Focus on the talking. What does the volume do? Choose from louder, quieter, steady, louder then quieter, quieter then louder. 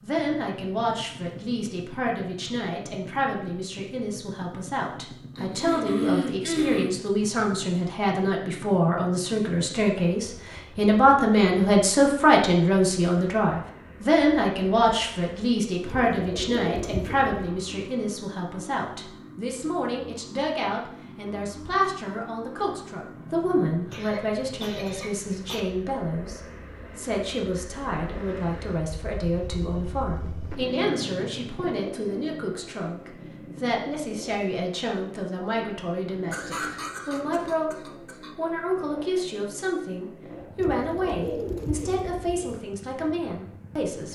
louder then quieter.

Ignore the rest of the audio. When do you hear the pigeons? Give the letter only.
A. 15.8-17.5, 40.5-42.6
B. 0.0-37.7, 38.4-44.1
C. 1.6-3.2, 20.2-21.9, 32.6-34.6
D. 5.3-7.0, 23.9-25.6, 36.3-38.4
A.